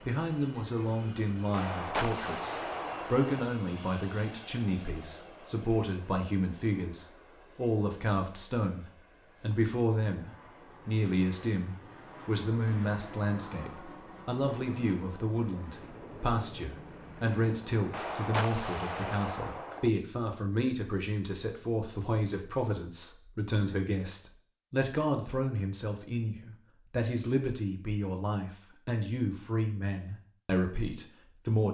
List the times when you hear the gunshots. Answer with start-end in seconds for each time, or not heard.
1.5-3.5, 17.9-19.9.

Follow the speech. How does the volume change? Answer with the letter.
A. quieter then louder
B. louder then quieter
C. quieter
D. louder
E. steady
E.